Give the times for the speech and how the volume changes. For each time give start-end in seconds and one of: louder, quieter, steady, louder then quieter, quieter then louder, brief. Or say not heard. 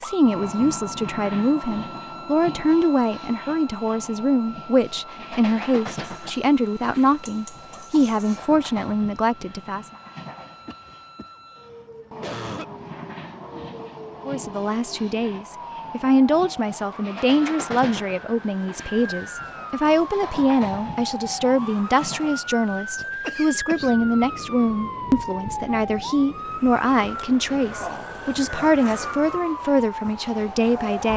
0.0-9.8 steady
14.2-31.1 steady.